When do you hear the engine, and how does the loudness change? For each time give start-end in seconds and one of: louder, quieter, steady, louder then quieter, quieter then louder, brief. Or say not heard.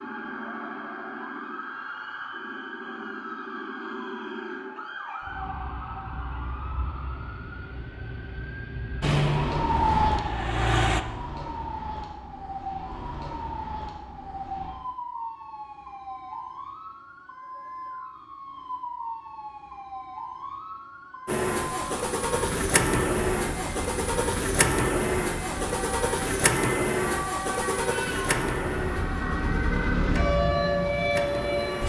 9.0-11.0 brief
21.2-31.8 quieter.